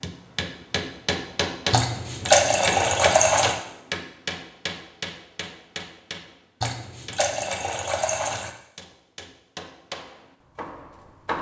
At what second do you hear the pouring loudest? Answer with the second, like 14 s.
2 s.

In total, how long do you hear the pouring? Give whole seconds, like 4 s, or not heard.
4 s.